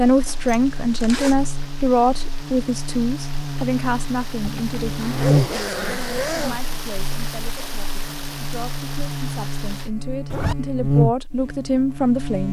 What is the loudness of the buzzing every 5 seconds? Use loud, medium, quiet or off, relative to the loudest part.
medium, loud, loud.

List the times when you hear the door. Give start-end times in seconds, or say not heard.
not heard.